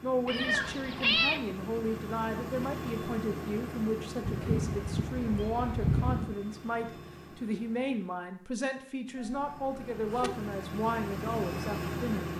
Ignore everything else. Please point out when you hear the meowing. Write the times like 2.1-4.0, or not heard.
0.2-1.4, 4.2-6.3, 9.2-10.3.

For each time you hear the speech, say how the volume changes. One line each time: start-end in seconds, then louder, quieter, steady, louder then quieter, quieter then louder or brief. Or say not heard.
0.0-12.3 steady.